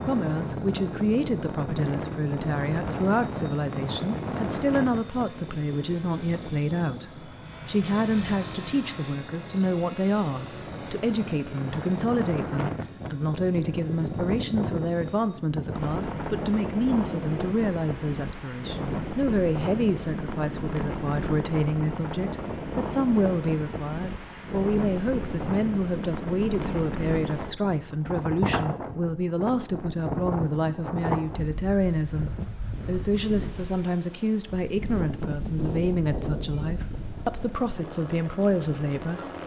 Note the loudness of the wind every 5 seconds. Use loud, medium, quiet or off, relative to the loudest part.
loud, medium, loud, loud, loud, loud, loud, loud.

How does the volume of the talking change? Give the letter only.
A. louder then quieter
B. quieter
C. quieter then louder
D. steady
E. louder
D.